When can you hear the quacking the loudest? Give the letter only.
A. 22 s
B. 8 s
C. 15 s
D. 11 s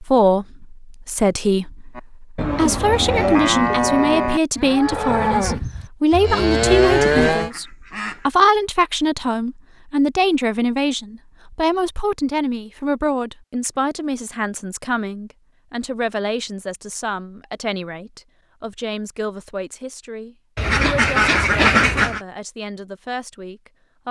A.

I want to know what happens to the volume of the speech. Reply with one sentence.
The loudness of the speech goes down.